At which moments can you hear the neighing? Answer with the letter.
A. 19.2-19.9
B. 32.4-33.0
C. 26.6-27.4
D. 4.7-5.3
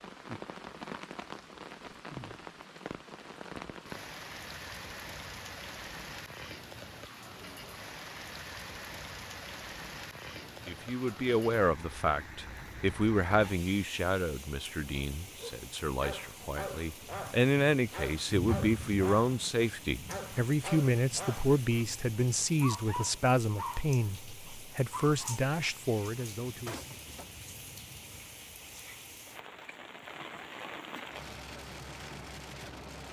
C.